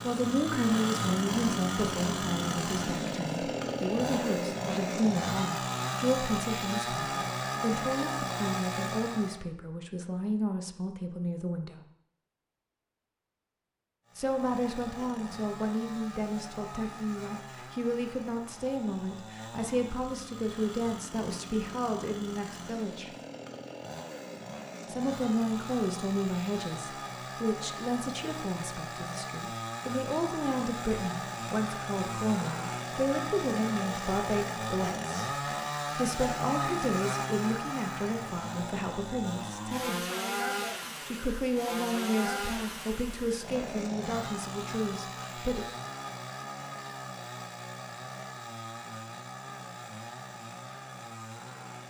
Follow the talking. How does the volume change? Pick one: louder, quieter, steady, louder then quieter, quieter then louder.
steady.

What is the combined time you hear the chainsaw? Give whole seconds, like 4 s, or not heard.
47 s.